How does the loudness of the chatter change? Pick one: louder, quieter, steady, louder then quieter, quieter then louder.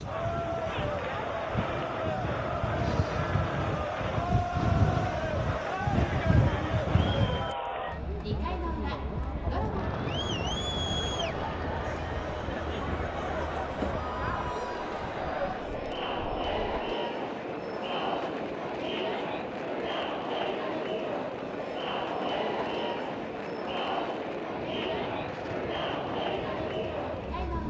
steady.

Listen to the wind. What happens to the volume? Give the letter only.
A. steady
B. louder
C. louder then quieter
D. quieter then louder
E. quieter
E.